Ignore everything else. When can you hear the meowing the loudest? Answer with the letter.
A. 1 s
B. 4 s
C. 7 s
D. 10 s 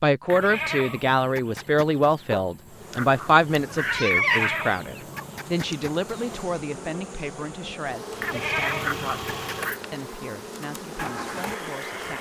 B.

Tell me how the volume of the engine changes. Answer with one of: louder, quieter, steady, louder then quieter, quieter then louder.
quieter then louder.